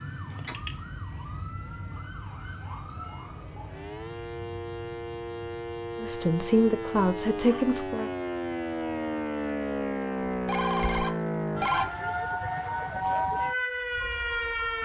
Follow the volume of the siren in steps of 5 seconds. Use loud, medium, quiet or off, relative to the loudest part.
quiet, loud, loud.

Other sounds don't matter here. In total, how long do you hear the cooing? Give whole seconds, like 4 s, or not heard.
not heard.